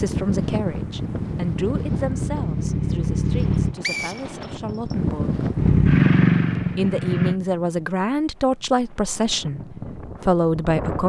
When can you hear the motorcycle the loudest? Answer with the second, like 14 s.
6 s.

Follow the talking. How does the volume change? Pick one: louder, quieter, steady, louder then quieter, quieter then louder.
quieter then louder.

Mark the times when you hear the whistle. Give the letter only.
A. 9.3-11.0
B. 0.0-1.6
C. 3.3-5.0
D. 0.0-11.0
C.